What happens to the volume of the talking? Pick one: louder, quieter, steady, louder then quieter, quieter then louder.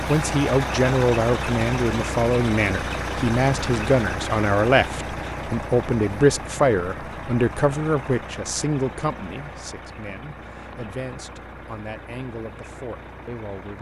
quieter.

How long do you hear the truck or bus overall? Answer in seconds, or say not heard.
14 s.